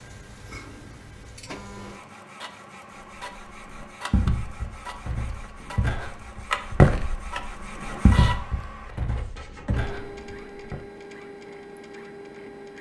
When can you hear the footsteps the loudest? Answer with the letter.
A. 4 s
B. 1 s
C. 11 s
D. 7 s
D.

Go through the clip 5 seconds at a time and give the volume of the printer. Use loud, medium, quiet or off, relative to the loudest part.
medium, loud, medium.